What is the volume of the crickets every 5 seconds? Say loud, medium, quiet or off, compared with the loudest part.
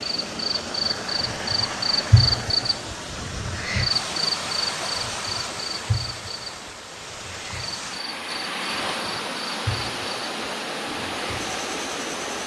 loud, medium, quiet.